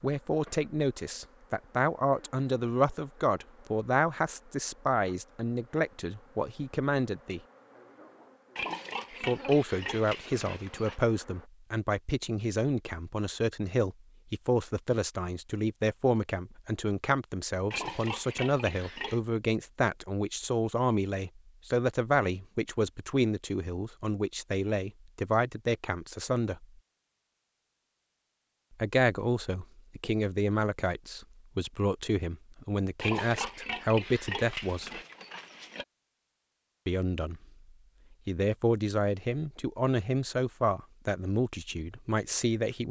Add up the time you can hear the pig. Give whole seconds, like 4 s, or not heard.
7 s.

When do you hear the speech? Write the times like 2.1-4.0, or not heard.
0.0-7.4, 9.2-26.6, 28.8-34.9, 36.9-37.4, 38.2-42.8.